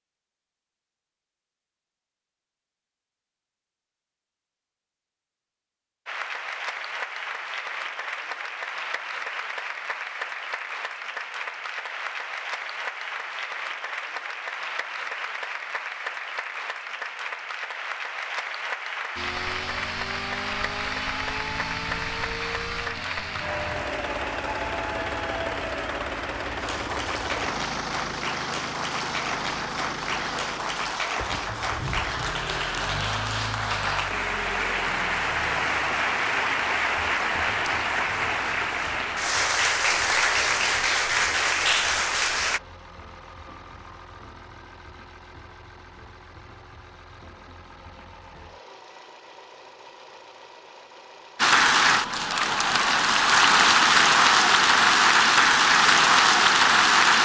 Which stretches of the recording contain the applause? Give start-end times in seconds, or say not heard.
6.0-42.6, 51.4-57.2.